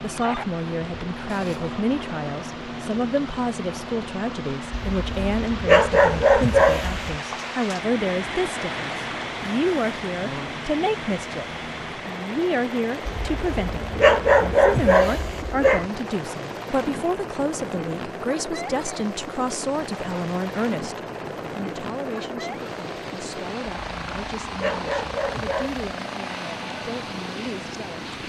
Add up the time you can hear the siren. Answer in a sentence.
You can't hear the siren here.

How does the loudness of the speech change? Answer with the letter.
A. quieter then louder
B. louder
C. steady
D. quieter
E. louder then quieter
D.